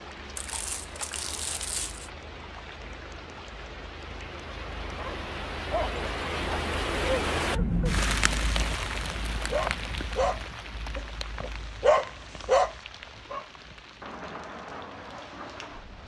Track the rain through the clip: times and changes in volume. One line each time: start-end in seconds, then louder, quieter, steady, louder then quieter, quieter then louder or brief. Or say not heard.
0.0-16.0 louder then quieter.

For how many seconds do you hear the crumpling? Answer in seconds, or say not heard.
2 s.